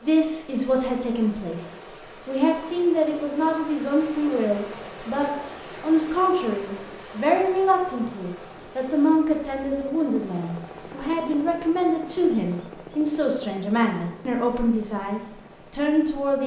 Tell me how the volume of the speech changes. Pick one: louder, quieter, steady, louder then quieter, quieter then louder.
steady.